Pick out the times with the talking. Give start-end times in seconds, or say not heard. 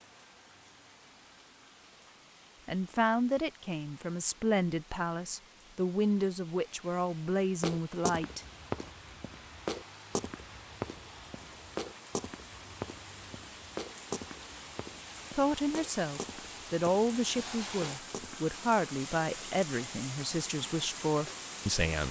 2.6-8.4, 15.3-22.0.